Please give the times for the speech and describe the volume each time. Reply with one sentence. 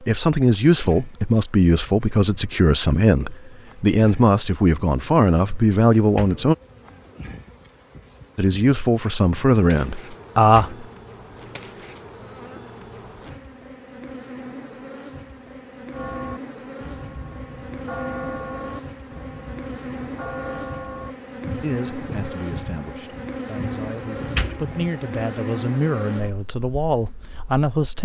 The speech can be heard from 0.0 to 6.5 s, at a steady volume; briefly from 8.3 to 10.8 s; and from 21.6 to 27.9 s, getting louder.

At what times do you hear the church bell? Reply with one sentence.
You can hear the church bell from 15.9 to 24.9 s.